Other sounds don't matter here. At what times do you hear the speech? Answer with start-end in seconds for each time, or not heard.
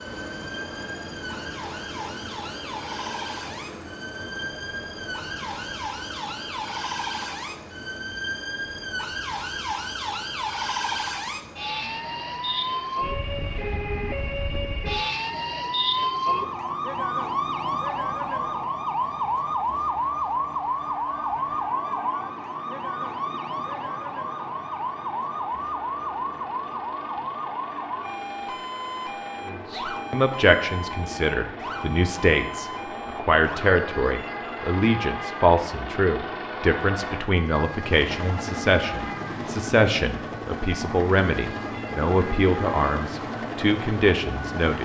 29.4-44.8.